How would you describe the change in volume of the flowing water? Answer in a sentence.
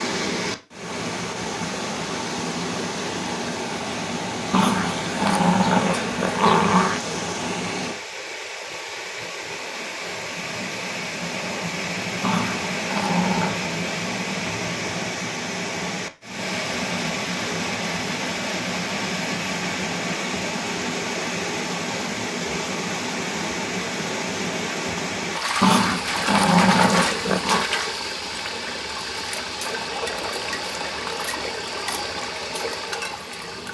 The volume of the flowing water stays about the same.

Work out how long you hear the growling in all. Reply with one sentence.
You can hear the growling for 6 seconds altogether.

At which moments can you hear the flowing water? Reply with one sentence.
The flowing water can be heard from 0.0 to 33.6 s.